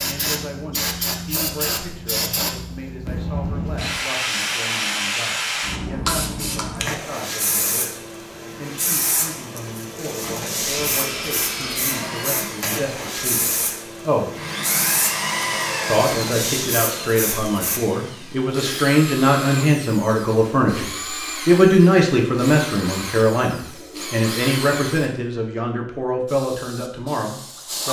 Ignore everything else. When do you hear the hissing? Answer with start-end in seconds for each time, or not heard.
0.0-17.8, 26.2-27.8.